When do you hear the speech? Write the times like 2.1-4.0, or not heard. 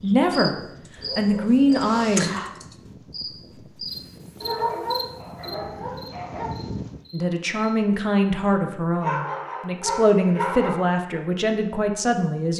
0.0-0.6, 1.1-2.4, 7.1-12.5.